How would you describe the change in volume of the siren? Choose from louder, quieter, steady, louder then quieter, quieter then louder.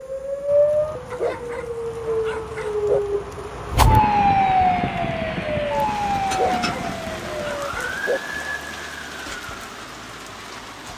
quieter.